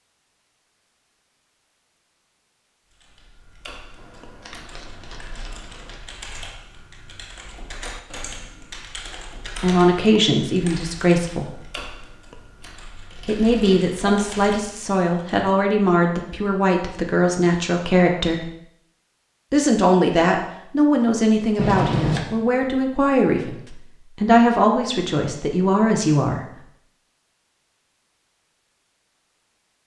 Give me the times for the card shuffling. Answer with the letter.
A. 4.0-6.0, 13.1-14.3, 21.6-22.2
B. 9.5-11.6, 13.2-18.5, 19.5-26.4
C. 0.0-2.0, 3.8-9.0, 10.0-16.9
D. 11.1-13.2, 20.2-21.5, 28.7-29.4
A.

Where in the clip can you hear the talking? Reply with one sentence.
The talking can be heard from 9.5 to 11.6 s, from 13.2 to 18.5 s and from 19.5 to 26.4 s.